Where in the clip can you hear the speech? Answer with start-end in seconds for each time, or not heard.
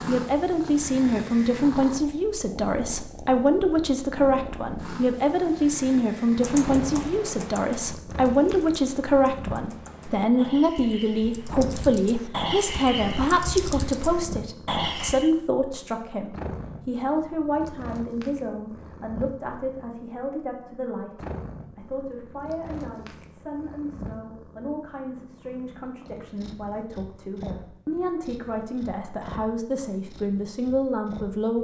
0.0-31.5.